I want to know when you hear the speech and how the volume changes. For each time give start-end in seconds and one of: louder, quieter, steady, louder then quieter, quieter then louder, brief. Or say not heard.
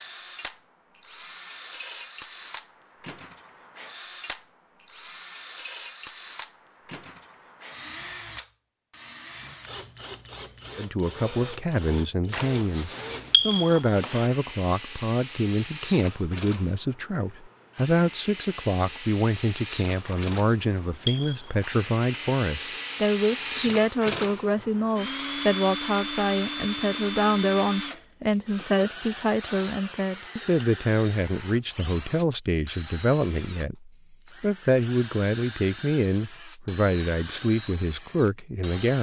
10.8-38.9 steady.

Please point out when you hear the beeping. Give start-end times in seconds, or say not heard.
12.3-14.3, 20.0-21.7.